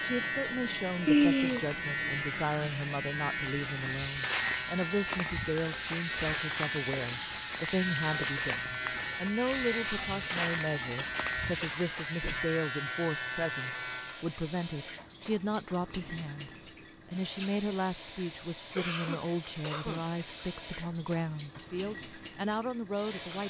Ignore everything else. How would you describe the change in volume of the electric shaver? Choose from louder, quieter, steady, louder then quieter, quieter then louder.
steady.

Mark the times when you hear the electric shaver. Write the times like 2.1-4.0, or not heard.
0.0-14.2.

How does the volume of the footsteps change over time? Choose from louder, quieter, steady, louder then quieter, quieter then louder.
steady.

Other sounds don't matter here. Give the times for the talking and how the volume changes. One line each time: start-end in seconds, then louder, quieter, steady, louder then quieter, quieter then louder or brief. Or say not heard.
0.0-23.4 steady.